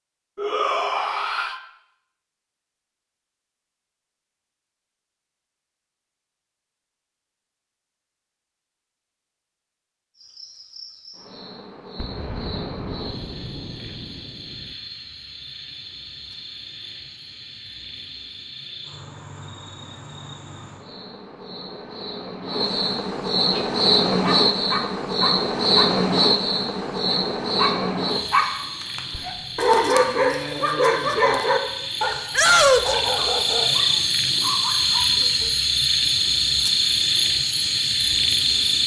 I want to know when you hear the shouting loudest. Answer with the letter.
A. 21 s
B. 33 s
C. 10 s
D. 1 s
B.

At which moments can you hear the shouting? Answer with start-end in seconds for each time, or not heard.
0.3-1.6, 32.3-33.0.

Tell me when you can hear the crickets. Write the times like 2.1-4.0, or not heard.
10.2-38.8.